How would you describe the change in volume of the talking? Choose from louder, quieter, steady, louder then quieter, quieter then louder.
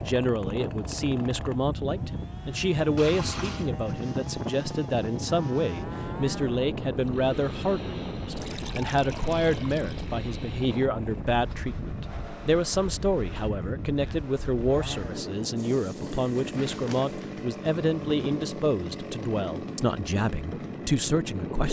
steady.